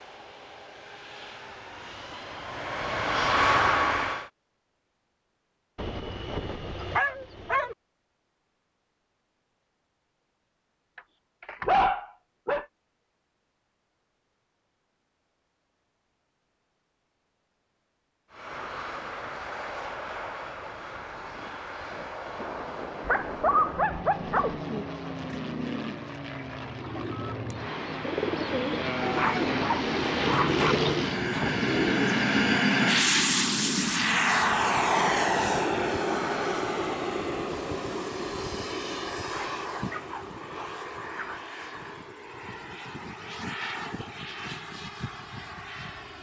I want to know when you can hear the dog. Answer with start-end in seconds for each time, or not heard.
5.8-7.8, 10.9-12.7, 23.1-24.6, 29.1-30.6, 39.3-41.4.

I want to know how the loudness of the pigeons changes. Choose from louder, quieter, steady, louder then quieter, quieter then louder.
louder.